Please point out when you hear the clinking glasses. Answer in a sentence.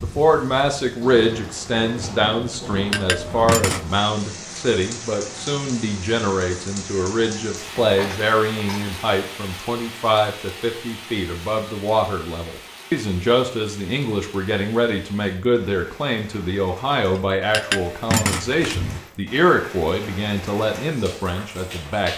The clinking glasses can be heard from 2.9 to 3.9 s, from 7.8 to 8.8 s and from 17.5 to 19.0 s.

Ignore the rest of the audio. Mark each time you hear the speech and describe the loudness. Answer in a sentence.
You can hear the speech from 0.0 to 22.1 s, at a steady volume.